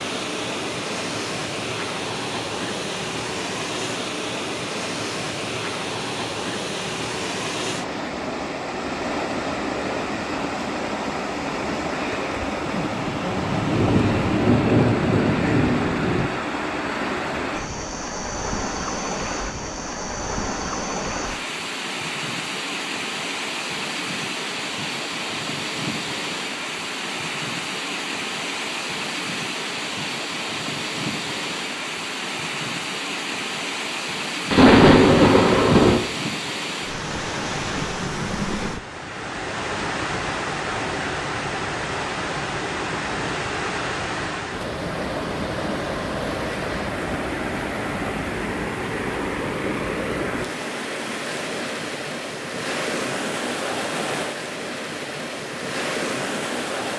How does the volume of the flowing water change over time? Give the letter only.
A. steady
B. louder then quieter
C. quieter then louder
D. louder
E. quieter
A.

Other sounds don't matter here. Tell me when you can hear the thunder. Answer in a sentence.
You can hear the thunder from 12.8 to 16.3 s and from 34.5 to 36.0 s.